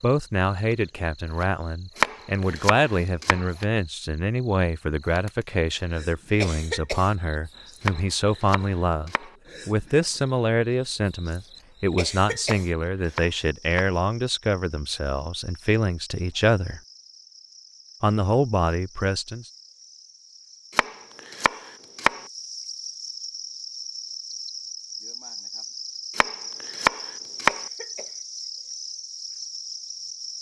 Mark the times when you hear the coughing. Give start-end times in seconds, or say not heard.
6.4-7.2, 11.9-12.7, 27.4-28.2.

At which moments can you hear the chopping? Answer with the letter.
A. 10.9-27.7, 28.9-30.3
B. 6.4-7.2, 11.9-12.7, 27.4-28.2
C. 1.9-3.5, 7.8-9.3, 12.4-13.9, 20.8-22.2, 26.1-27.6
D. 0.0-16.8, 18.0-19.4
C.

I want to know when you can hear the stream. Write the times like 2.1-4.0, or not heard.
not heard.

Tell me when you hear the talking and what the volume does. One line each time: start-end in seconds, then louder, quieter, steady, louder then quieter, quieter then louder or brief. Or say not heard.
0.0-16.8 steady
18.0-19.4 brief.